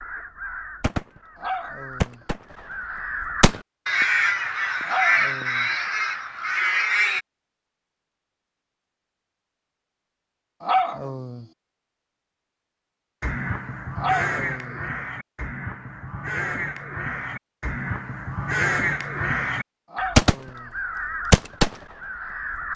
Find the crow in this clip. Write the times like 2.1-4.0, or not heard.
0.0-7.2, 13.2-22.7.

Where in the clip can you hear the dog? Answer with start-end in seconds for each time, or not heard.
1.4-2.2, 4.8-5.7, 10.6-11.4, 13.9-14.8, 19.9-20.8.